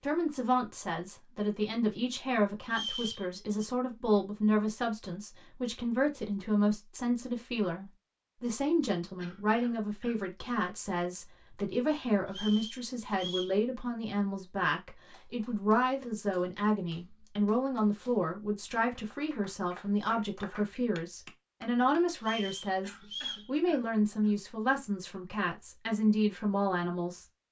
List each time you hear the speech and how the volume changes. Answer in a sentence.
You can hear the speech from 0.0 to 27.2 s, at a steady volume.